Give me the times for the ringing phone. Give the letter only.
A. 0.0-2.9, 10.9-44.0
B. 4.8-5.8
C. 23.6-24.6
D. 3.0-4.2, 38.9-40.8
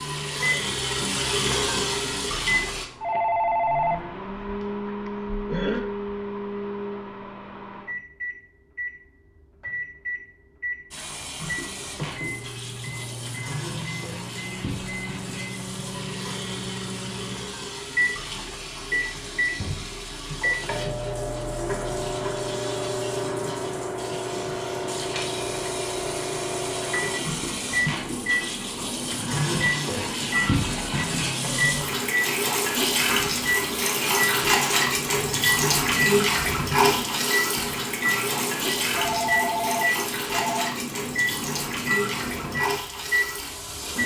D.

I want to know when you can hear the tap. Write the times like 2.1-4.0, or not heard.
0.0-2.9, 10.9-44.0.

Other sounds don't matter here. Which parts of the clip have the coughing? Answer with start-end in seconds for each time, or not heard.
4.8-5.8.